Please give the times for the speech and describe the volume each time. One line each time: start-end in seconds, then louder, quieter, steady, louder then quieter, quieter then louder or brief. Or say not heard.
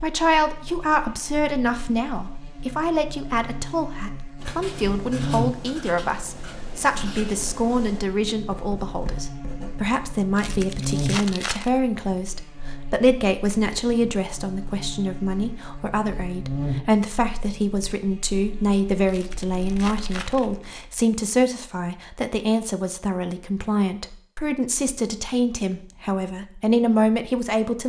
0.0-27.8 steady.